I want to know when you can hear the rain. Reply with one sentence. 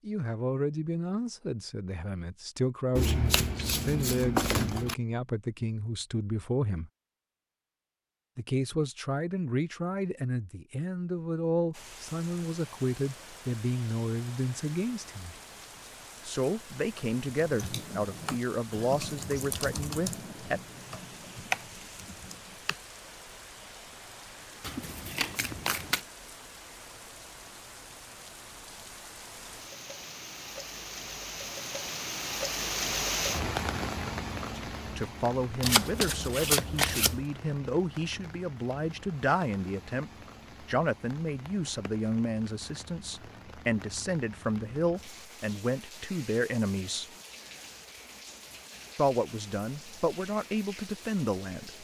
You can hear the rain from 11.7 to 51.8 s.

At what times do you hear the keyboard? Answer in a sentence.
You can hear the keyboard from 16.8 to 22.8 s.